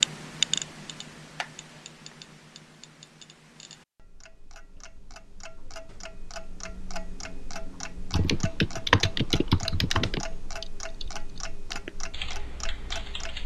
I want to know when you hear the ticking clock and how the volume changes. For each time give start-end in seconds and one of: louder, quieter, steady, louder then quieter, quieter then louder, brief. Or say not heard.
0.0-13.4 quieter then louder.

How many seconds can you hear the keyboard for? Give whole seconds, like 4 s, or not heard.
5 s.